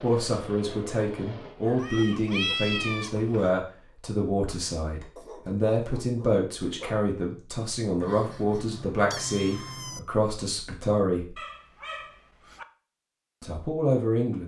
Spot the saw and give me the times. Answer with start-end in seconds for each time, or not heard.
not heard.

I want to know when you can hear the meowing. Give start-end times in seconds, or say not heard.
1.8-3.5, 8.0-10.0.